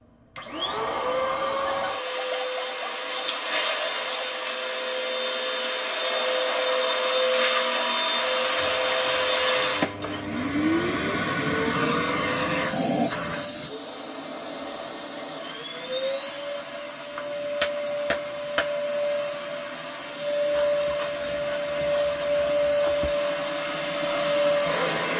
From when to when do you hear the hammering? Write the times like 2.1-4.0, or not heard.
17.1-18.6.